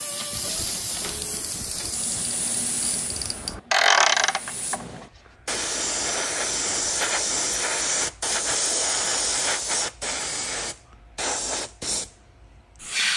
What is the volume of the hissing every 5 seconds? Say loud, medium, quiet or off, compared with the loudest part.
medium, loud, loud.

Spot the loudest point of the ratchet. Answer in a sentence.
The volume of the ratchet peaks at 4 seconds.